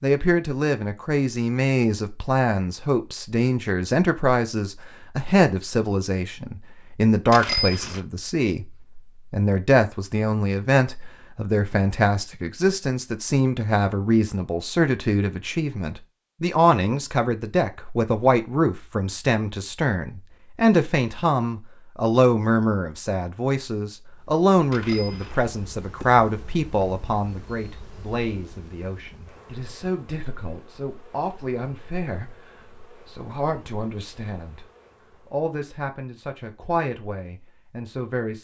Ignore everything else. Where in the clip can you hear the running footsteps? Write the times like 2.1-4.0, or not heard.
not heard.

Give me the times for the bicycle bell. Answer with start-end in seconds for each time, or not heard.
7.3-8.0, 24.7-25.5.